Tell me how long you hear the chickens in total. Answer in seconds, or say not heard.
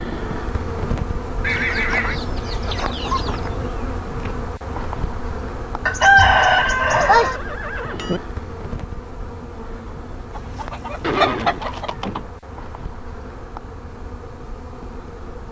5 s.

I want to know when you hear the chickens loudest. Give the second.
6 s.